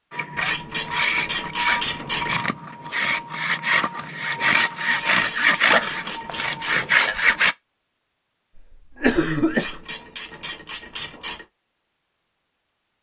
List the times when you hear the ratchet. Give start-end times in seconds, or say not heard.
0.3-2.4, 4.8-6.8, 9.5-11.4.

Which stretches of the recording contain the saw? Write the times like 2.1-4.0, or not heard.
0.1-7.5.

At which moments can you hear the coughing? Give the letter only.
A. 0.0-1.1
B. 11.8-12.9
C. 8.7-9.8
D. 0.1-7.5
C.